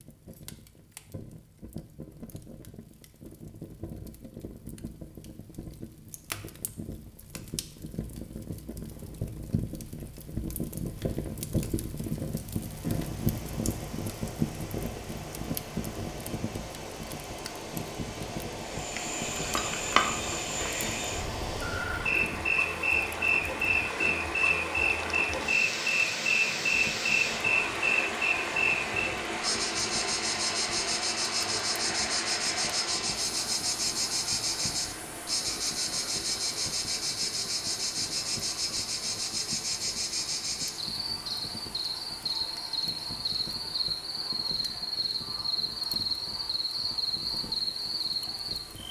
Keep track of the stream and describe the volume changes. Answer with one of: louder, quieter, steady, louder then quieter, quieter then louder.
louder then quieter.